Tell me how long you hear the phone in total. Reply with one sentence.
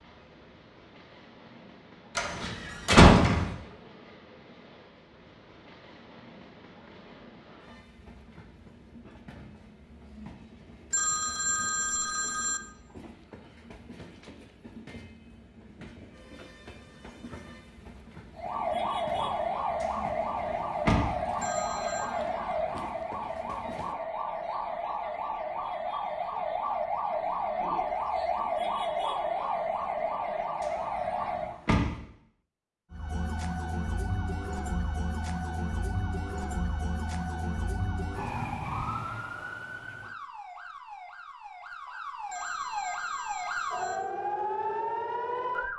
The phone can be heard for 4 seconds in total.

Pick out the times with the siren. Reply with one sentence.
The siren can be heard from 18.4 to 31.6 s and from 32.9 to 45.7 s.